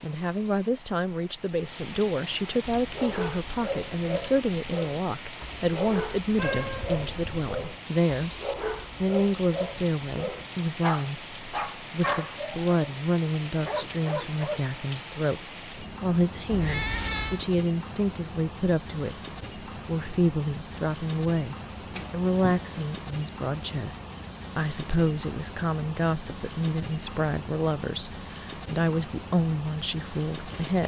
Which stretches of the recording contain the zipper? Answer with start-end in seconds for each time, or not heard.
not heard.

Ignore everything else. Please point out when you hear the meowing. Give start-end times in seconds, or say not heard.
6.3-7.5, 16.4-17.4, 21.9-22.9.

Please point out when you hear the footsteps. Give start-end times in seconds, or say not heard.
not heard.